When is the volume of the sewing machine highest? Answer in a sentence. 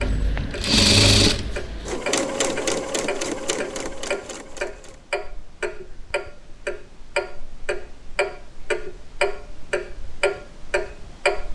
The loudest moment of the sewing machine is at 1 second.